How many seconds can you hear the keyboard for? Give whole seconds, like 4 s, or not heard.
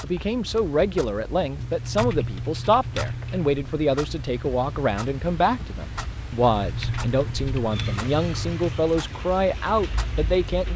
4 s.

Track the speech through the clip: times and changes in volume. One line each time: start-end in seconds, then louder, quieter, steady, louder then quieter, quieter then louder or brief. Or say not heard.
0.0-10.7 steady.